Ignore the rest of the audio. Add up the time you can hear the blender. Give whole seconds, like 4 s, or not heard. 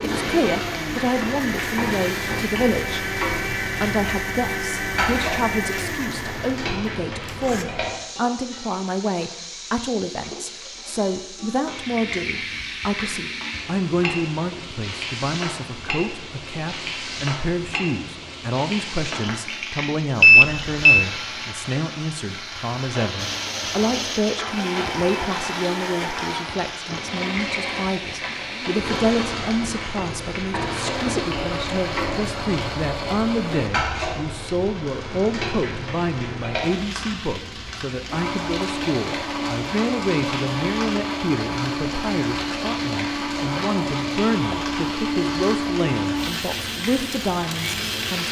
28 s.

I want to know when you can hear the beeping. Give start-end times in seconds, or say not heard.
20.2-21.1.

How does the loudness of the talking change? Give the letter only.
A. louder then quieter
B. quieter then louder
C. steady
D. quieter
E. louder
C.